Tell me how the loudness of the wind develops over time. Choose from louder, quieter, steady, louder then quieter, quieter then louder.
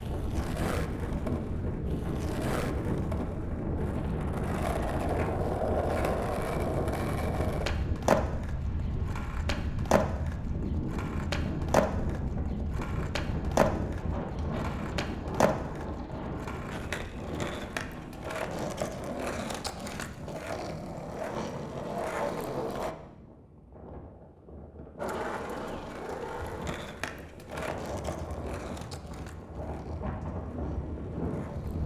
quieter then louder.